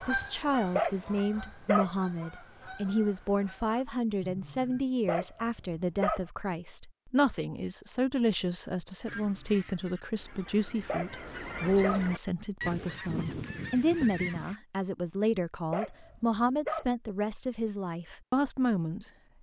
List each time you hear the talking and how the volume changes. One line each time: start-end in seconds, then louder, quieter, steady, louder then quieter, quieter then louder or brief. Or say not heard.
0.1-19.1 steady.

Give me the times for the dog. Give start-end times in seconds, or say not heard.
0.8-1.9, 5.0-6.2, 10.8-12.1, 15.7-16.9.